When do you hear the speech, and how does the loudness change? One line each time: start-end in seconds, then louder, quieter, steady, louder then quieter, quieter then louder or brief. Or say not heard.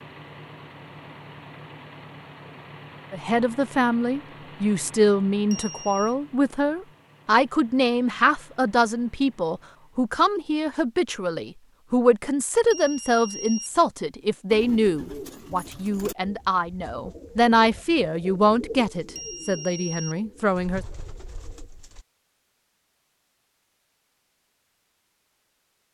3.1-20.9 steady.